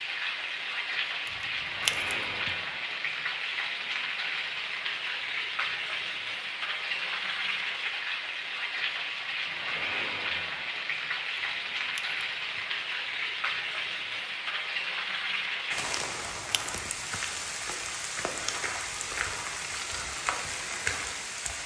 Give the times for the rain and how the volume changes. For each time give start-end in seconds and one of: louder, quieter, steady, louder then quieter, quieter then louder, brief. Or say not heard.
0.0-21.6 steady.